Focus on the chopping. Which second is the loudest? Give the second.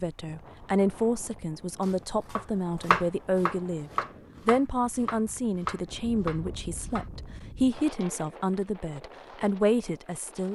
3 s.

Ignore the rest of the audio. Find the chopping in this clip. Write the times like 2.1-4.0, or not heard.
1.8-7.0.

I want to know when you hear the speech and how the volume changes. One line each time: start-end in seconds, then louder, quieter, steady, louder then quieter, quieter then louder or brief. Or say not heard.
0.0-10.5 steady.